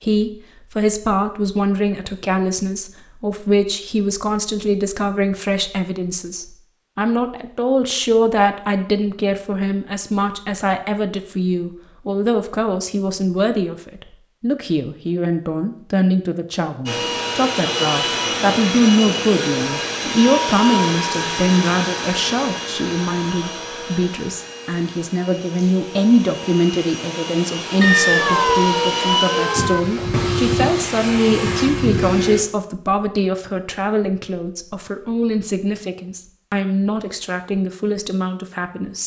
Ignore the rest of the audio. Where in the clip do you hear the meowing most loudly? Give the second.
28 s.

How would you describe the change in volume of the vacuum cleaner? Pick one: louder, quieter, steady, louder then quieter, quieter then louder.
quieter then louder.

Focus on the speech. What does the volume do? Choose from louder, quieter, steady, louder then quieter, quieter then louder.
steady.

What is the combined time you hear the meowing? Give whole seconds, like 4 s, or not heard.
2 s.